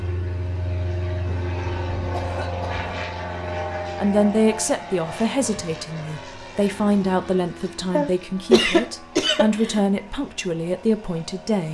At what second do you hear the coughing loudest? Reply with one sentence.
The loudest moment of the coughing is at 9 seconds.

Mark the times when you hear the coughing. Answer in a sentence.
You can hear the coughing from 2.1 to 2.8 s and from 8.0 to 9.8 s.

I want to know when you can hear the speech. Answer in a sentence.
You can hear the speech from 4.0 to 11.7 s.